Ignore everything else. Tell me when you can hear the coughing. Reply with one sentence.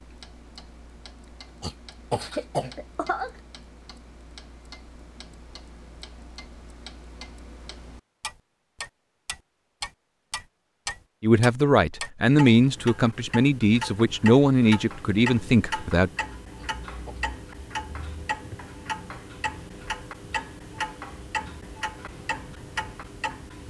The coughing can be heard from 1.6 to 3.3 s and from 16.6 to 17.2 s.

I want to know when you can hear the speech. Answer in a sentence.
You can hear the speech from 11.2 to 16.1 s.